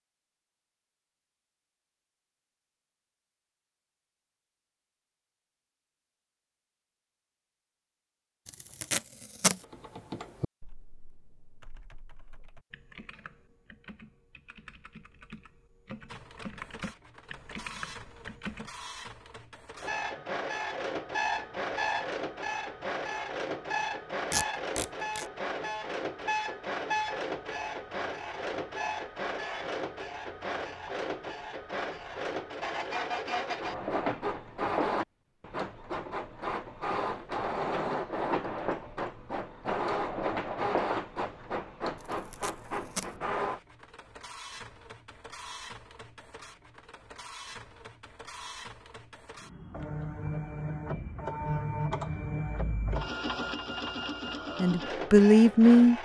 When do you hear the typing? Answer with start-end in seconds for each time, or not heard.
9.6-18.7.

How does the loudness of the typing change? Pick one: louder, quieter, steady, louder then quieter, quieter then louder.
quieter then louder.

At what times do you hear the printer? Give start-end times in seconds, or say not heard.
16.1-56.0.